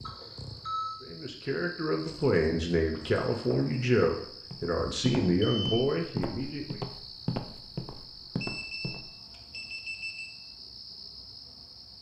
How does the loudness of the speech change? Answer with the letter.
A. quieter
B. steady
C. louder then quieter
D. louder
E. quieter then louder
B.